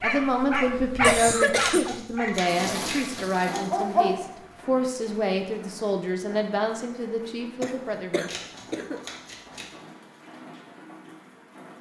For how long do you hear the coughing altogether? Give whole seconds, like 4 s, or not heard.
2 s.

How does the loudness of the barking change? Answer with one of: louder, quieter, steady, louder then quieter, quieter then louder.
quieter then louder.